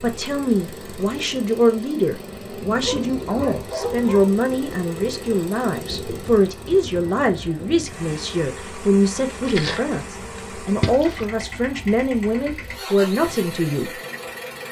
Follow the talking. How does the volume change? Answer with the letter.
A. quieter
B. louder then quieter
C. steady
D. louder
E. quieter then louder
C.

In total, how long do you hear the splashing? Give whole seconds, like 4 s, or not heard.
2 s.